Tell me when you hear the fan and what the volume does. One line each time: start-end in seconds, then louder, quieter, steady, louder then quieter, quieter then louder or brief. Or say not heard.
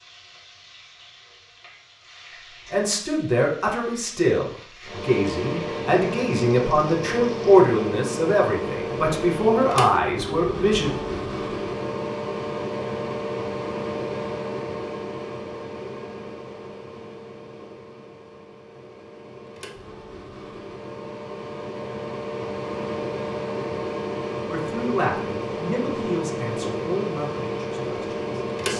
4.8-28.7 quieter then louder.